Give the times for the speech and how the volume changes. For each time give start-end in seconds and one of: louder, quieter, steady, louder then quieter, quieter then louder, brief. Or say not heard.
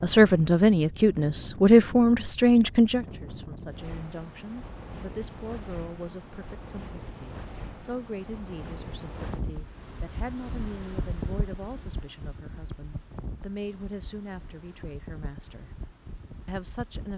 0.0-15.7 quieter
16.4-17.1 brief.